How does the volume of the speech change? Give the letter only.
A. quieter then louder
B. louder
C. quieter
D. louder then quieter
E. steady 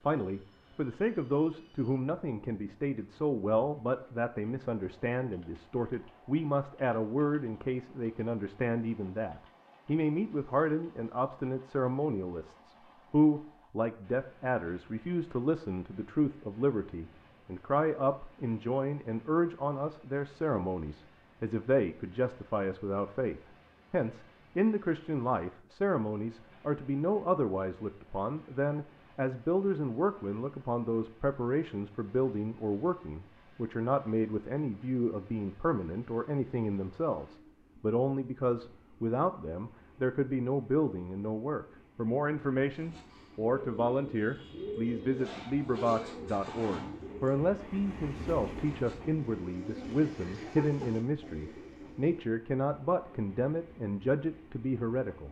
E.